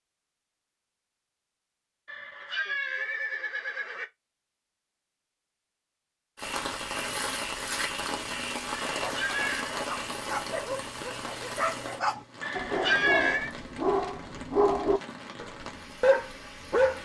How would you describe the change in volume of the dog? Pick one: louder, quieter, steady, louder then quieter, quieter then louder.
louder.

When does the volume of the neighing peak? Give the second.
13 s.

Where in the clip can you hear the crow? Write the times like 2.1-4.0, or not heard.
not heard.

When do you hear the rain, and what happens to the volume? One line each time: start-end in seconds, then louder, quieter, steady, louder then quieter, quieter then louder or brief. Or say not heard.
6.3-17.0 quieter.